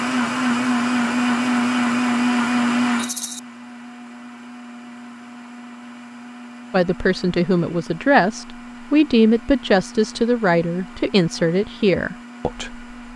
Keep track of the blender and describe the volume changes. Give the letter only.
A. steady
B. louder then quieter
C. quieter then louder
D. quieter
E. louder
D.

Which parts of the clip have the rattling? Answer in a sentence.
The rattling can be heard from 3.0 to 3.4 s.